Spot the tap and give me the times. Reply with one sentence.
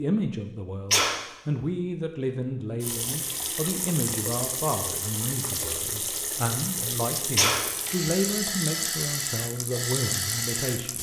You can hear the tap from 2.8 to 10.9 s.